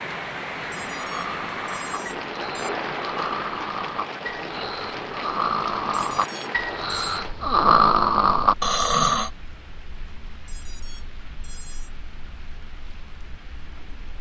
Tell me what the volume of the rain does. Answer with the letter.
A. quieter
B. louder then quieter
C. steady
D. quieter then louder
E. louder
A.